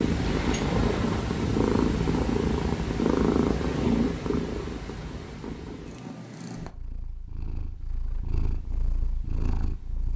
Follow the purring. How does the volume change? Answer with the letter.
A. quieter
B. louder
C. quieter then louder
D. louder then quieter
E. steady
A.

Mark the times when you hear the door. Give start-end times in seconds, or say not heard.
0.2-1.1.